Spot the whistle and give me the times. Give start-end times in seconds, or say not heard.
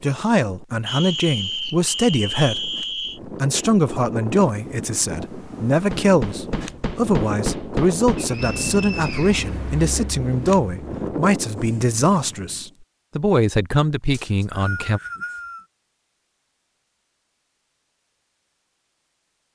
0.8-3.2, 8.2-9.4, 14.1-15.7.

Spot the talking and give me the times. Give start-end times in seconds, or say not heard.
0.0-15.0.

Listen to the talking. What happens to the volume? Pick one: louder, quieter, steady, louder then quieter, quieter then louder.
steady.